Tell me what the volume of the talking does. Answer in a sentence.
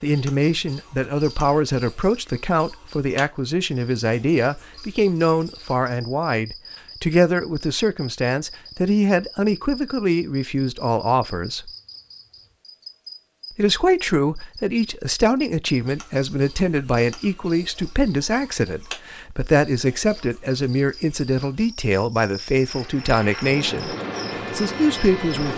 The loudness of the talking stays about the same.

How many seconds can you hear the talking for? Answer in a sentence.
The talking can be heard for 24 seconds in total.